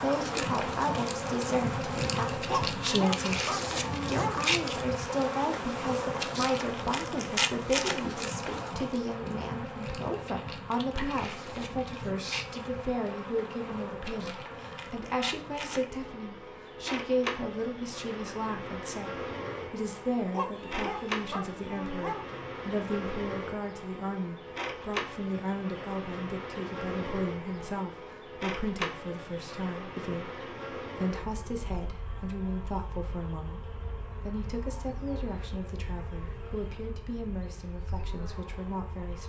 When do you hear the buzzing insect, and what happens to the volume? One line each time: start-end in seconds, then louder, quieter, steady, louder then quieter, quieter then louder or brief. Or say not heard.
0.0-39.2 quieter.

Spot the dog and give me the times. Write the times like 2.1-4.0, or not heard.
2.5-4.4, 20.3-22.2.